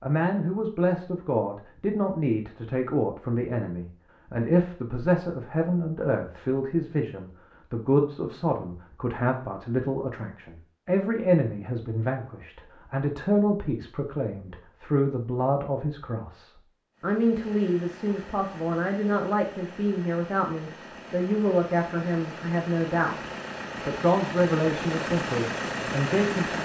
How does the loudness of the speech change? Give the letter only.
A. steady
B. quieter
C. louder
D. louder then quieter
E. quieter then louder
A.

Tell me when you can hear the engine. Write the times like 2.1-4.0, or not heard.
16.9-26.6.